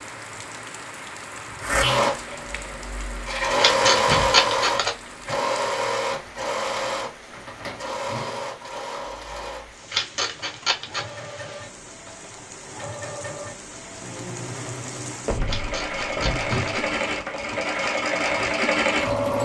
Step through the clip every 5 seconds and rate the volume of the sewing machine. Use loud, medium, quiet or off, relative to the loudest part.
loud, medium, quiet, loud.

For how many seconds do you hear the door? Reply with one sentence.
You can hear the door for 4 seconds altogether.